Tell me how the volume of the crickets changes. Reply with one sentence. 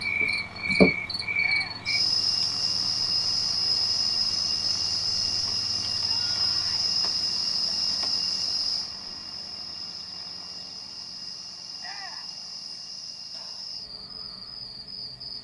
The loudness of the crickets goes down.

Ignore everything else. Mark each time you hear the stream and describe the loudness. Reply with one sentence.
The stream can't be heard in this clip.